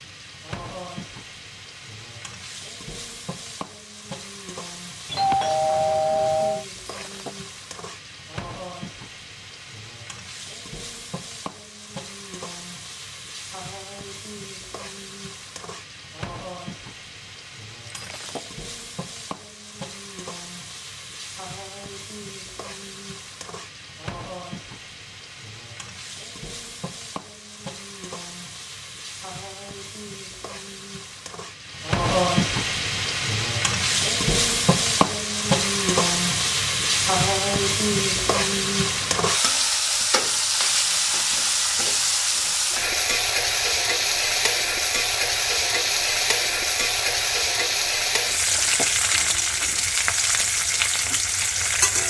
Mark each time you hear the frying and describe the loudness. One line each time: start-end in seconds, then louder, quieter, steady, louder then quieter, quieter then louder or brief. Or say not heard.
0.0-52.0 louder.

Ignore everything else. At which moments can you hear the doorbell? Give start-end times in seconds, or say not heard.
5.0-6.7.